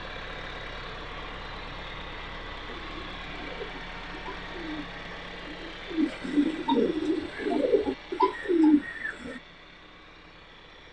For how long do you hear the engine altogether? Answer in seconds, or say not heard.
11 s.